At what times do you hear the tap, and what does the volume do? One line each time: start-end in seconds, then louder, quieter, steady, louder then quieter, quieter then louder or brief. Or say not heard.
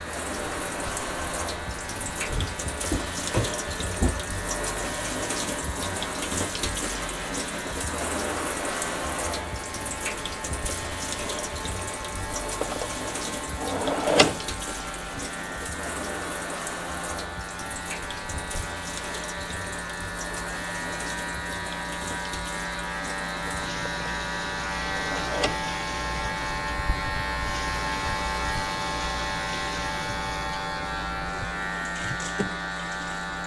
0.0-33.4 quieter.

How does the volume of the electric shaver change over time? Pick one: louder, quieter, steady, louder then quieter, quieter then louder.
louder.